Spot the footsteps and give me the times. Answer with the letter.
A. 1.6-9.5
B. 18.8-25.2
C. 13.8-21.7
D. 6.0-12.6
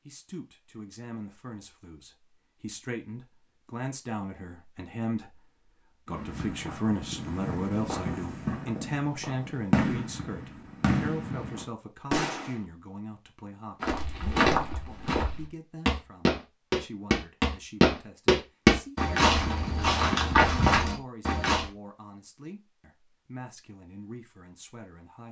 C.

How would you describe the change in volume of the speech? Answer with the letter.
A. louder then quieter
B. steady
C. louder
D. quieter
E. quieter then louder
A.